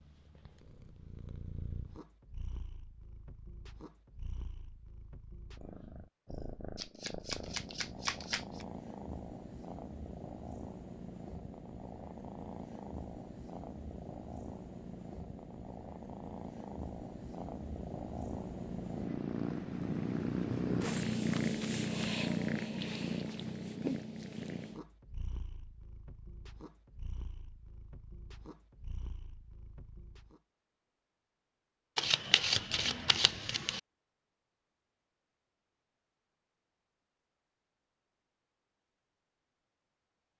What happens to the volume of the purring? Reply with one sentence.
The volume of the purring goes up, then down.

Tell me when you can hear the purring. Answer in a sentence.
You can hear the purring from 0.0 to 30.4 s.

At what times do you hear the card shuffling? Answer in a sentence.
You can hear the card shuffling from 6.8 to 8.7 s, from 21.3 to 22.1 s and from 31.9 to 33.8 s.